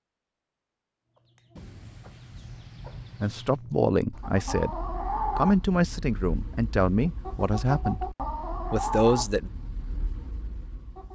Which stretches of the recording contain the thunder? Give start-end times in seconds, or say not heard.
1.6-3.5.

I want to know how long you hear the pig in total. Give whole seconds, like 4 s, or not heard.
not heard.